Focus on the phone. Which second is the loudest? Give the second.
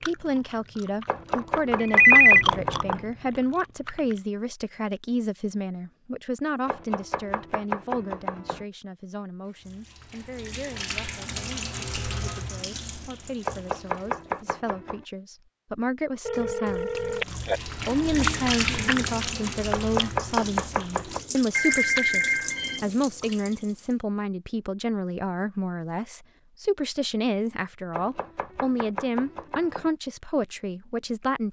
2 s.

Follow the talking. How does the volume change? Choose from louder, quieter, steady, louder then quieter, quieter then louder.
quieter then louder.